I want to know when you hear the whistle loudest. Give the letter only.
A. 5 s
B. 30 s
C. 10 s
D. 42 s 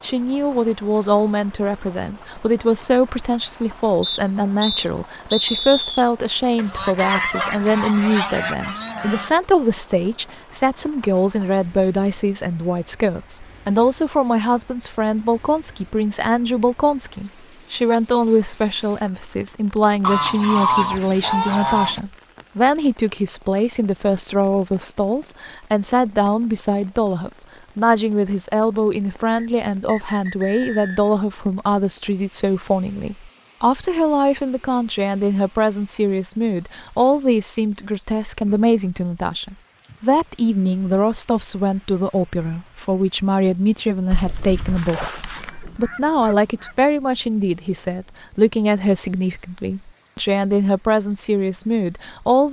A.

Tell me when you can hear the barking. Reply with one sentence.
The barking can't be heard in this clip.